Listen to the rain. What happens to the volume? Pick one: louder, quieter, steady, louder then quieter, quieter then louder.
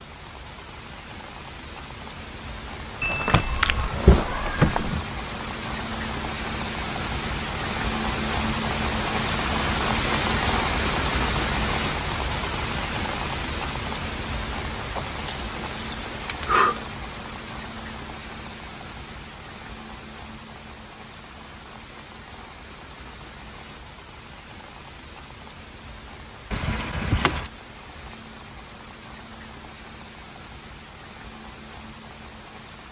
louder then quieter.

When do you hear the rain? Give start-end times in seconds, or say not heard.
0.0-32.8.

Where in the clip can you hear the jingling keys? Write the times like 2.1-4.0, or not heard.
3.0-5.0, 15.2-16.8, 26.5-27.5.